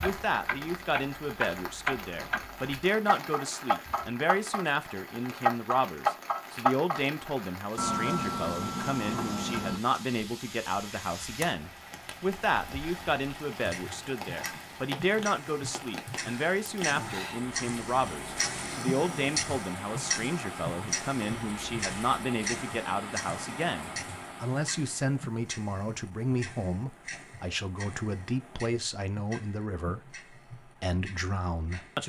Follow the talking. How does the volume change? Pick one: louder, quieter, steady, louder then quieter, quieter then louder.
steady.